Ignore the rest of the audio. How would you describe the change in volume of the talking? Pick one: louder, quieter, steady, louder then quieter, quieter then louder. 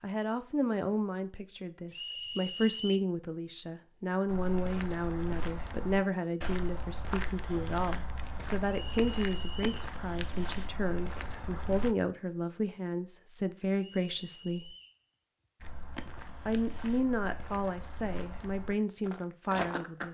steady.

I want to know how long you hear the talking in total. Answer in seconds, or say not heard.
18 s.